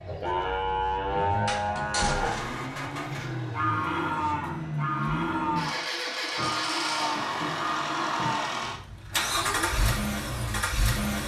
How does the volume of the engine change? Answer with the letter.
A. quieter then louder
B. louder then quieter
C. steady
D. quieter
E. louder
E.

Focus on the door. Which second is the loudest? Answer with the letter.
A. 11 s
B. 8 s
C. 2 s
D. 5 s
C.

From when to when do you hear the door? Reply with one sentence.
The door can be heard from 1.4 to 2.5 s and from 6.3 to 8.3 s.